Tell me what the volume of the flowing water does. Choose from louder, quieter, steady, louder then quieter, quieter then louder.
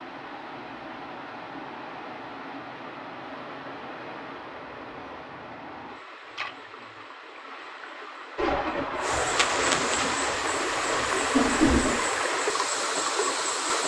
louder.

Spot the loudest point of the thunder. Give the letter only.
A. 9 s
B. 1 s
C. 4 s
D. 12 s
D.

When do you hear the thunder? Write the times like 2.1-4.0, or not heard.
8.3-12.1.